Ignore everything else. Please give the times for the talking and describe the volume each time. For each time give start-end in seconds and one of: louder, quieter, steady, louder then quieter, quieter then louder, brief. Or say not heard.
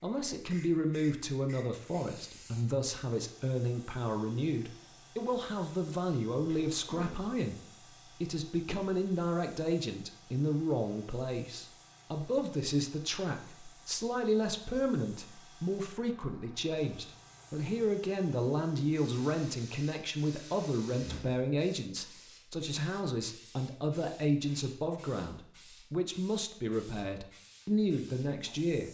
0.0-28.8 steady.